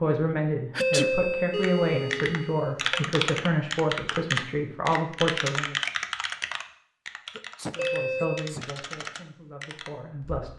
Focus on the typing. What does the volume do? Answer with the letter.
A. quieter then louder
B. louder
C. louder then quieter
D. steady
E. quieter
E.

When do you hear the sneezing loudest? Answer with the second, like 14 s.
1 s.